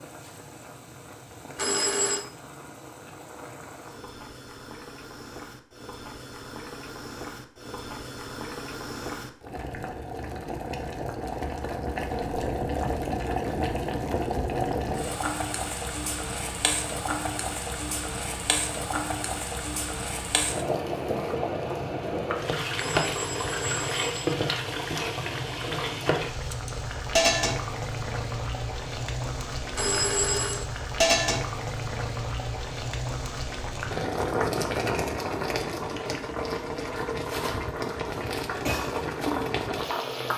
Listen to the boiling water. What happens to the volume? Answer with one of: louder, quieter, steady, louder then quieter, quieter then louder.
louder.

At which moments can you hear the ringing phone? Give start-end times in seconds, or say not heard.
1.6-2.2, 22.8-24.4, 29.8-30.6.